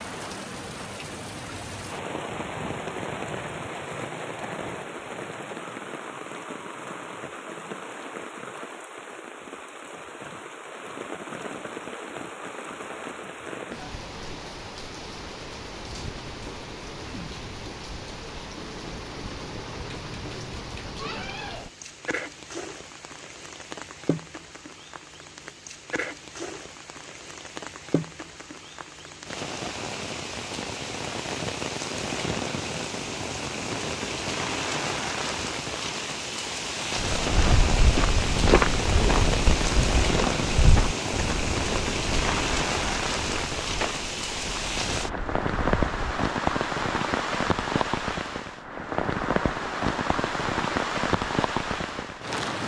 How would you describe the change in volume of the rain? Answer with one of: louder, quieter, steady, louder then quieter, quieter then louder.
louder.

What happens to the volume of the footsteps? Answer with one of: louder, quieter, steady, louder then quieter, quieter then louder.
quieter.